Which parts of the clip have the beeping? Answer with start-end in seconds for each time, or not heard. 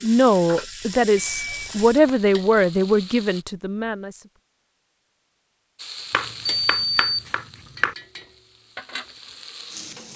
1.1-2.1, 6.5-7.2.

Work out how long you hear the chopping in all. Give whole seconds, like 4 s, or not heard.
2 s.